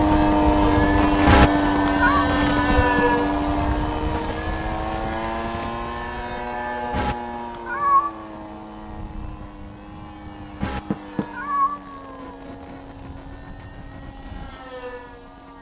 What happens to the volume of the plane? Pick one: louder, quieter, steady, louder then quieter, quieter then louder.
quieter.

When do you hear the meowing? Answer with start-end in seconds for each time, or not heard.
1.2-2.2, 6.9-8.2, 10.6-12.3.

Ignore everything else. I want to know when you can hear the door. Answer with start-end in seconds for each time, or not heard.
2.4-3.1, 10.6-11.3.